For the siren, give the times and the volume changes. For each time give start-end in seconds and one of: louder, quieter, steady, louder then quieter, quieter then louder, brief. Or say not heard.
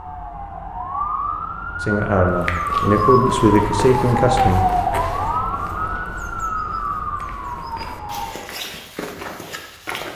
0.0-8.4 louder then quieter.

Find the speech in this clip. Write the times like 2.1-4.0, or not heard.
1.8-4.7.